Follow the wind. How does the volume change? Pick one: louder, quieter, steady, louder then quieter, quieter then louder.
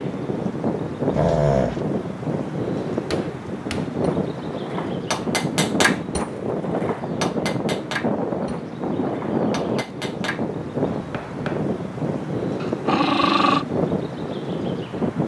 steady.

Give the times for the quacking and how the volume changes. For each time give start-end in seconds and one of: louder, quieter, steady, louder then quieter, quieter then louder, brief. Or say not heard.
not heard.